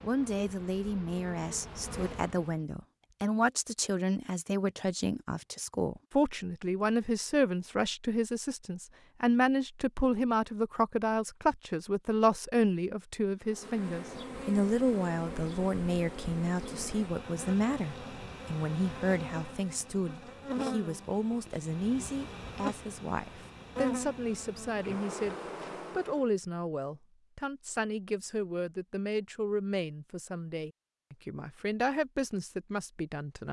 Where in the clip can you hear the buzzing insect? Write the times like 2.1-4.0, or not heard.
0.0-2.6, 13.4-26.2.